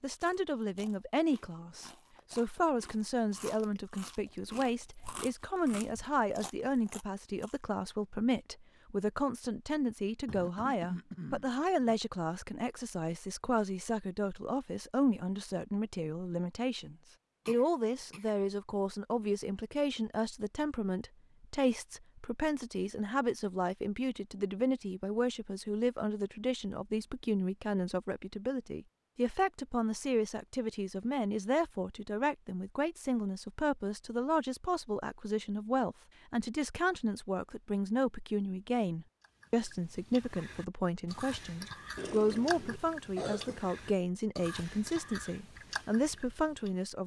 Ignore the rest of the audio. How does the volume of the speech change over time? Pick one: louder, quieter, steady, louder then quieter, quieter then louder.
steady.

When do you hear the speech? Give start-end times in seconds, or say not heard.
0.0-47.0.